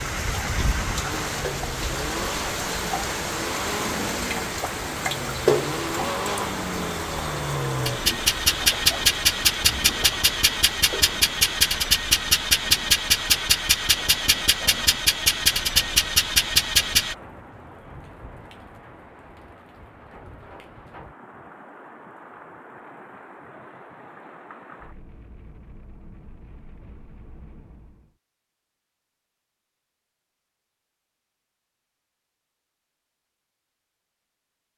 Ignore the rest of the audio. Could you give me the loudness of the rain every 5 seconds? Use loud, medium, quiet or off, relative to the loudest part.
loud, loud, medium, quiet, quiet, quiet, off.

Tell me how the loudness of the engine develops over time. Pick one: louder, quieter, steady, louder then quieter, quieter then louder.
louder.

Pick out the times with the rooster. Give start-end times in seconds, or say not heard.
not heard.